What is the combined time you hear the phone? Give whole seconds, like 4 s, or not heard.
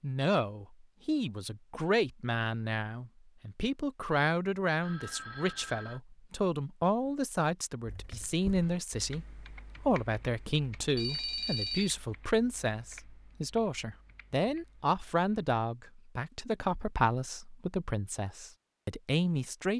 2 s.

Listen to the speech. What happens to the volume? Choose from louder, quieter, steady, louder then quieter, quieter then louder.
steady.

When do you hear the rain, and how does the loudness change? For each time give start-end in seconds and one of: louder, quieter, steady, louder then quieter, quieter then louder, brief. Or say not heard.
not heard.